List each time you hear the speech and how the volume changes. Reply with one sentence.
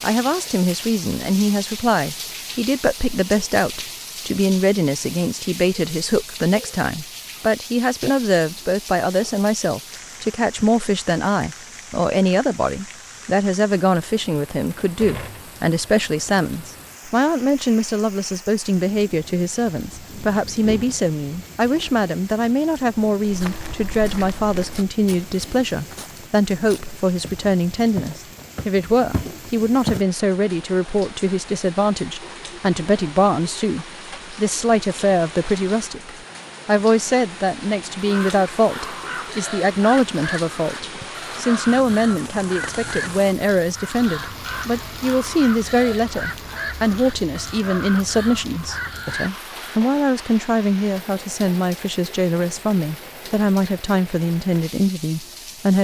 You can hear the speech from 0.0 to 55.7 s, at a steady volume.